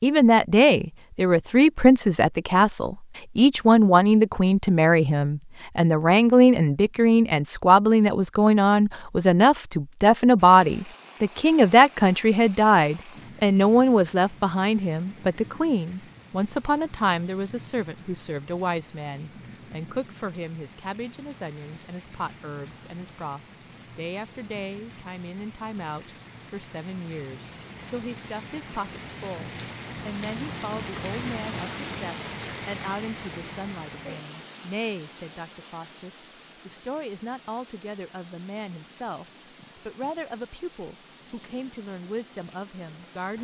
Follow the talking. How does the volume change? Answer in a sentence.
The volume of the talking goes down.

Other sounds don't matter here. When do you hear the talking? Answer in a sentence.
The talking can be heard from 0.0 to 43.3 s.